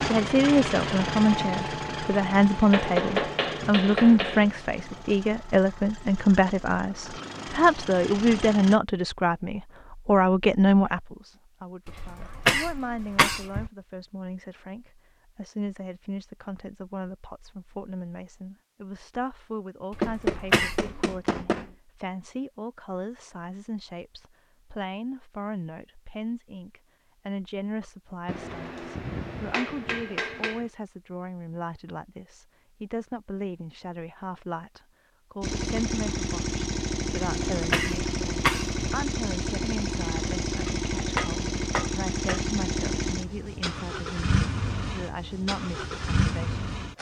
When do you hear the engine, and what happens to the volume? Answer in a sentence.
You can hear the engine from 0.0 to 8.8 s, getting quieter then louder; and from 35.4 to 46.9 s, at a steady volume.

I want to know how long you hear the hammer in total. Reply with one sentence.
You can hear the hammer for 8 seconds altogether.